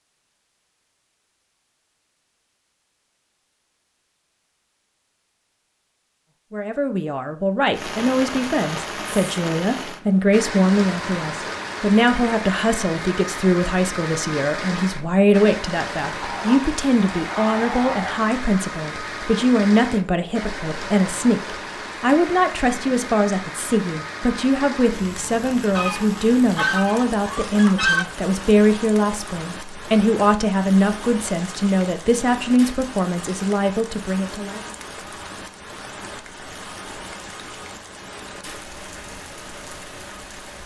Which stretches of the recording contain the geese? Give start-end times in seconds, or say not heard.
16.2-18.1, 25.8-28.1.